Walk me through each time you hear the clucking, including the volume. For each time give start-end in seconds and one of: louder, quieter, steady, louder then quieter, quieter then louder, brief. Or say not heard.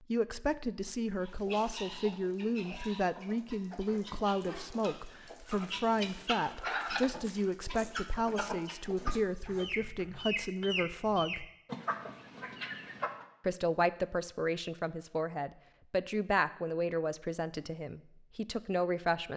1.2-13.2 louder.